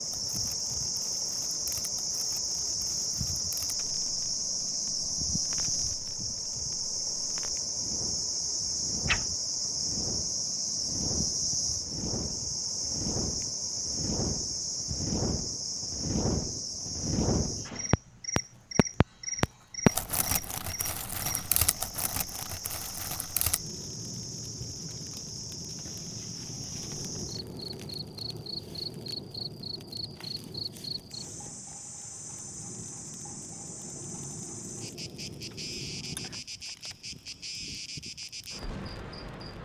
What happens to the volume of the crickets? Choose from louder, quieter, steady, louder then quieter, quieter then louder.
quieter.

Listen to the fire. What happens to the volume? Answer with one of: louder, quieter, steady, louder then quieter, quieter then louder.
louder then quieter.